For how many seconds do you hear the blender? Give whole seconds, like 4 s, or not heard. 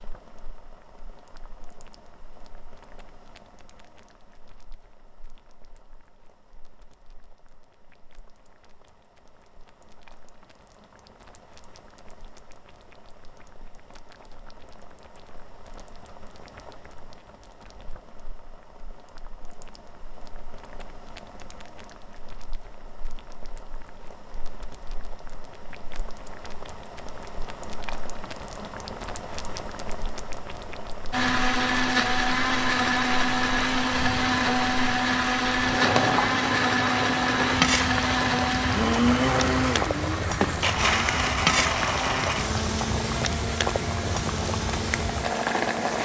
15 s.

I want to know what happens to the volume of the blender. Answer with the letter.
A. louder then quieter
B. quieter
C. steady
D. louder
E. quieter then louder
B.